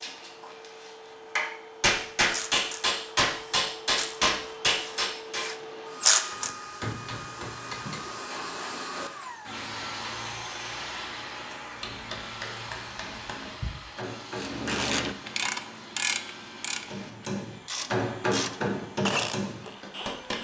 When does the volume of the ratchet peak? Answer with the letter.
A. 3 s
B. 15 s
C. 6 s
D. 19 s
C.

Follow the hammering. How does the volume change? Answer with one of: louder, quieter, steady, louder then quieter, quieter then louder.
quieter then louder.